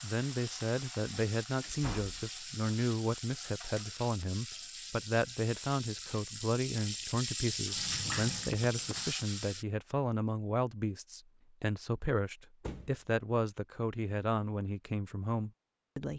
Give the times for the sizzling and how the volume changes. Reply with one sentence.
You can hear the sizzling from 0.0 to 9.7 s, getting louder.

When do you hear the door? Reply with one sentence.
The door can be heard from 1.6 to 2.4 s, from 7.7 to 9.1 s and from 12.6 to 13.0 s.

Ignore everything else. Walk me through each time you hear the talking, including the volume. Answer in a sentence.
You can hear the talking from 0.0 to 16.1 s, at a steady volume.